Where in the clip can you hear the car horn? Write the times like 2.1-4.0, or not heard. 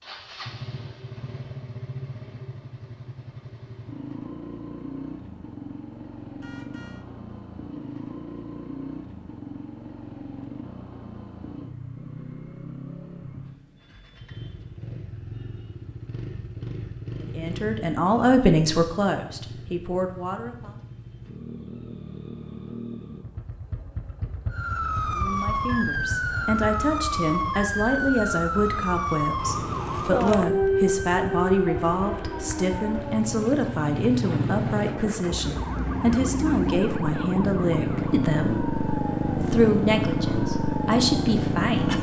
6.4-7.0.